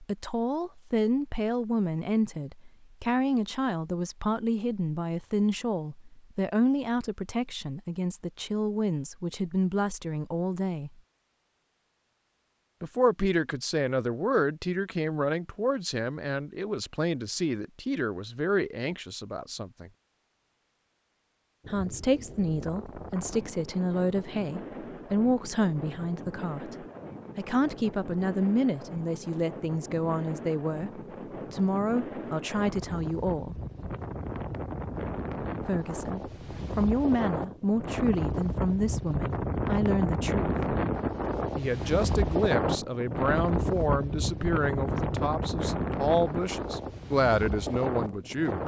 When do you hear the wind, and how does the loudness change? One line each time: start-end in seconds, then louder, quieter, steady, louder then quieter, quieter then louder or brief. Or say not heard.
21.6-48.6 louder.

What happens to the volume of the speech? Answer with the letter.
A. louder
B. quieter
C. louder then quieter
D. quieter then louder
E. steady
E.